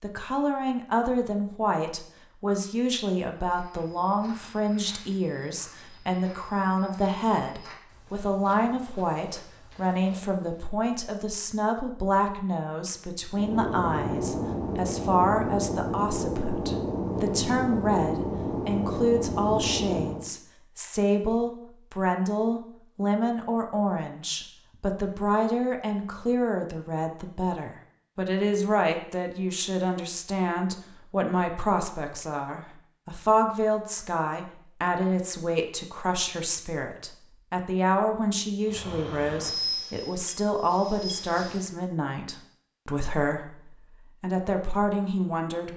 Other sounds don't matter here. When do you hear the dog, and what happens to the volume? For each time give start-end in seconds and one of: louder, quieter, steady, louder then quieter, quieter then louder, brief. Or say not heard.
not heard.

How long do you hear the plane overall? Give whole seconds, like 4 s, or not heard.
10 s.